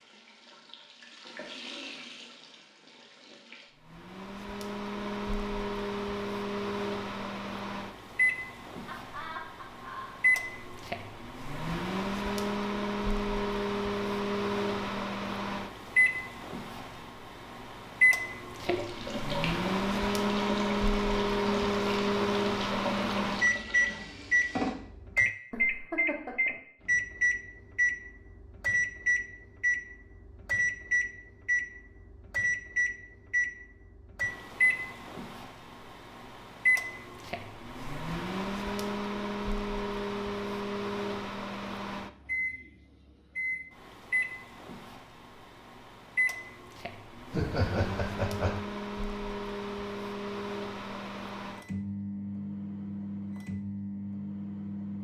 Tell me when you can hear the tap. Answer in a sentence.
You can hear the tap from 0.0 to 3.8 s and from 18.6 to 24.8 s.